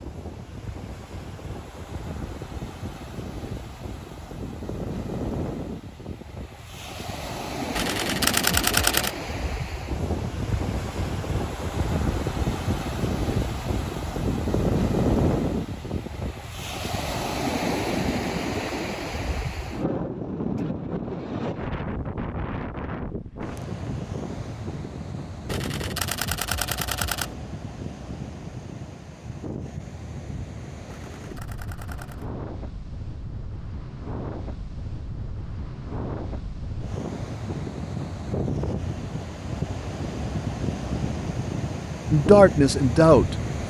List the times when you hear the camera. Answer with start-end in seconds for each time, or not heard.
7.8-9.2, 25.4-27.4, 30.9-32.2.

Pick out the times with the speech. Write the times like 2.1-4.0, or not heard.
42.1-43.6.